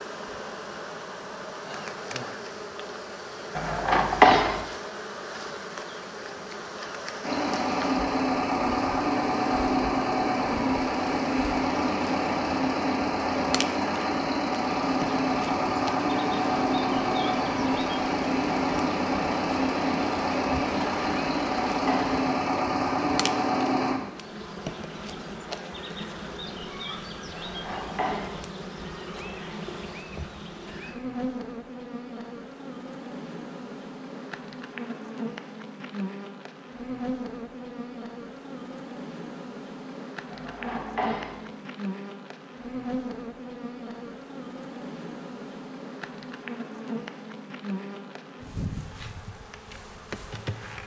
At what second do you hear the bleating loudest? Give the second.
4 s.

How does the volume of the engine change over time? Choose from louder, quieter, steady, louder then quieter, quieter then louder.
steady.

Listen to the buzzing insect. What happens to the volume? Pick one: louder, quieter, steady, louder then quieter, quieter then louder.
steady.